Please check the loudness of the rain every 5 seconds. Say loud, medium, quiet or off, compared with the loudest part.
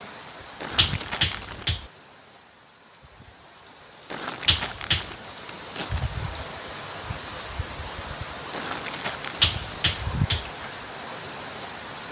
medium, loud, loud.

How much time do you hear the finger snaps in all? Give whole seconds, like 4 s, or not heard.
3 s.